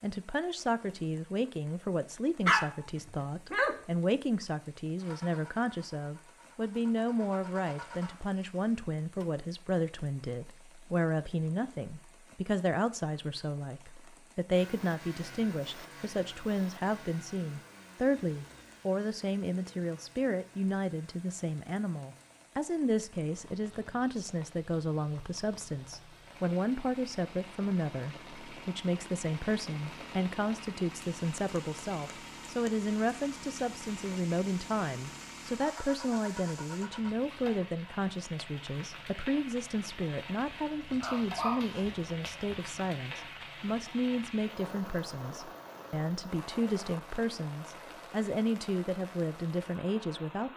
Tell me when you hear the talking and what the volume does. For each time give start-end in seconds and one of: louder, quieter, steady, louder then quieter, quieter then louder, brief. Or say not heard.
0.0-50.5 steady.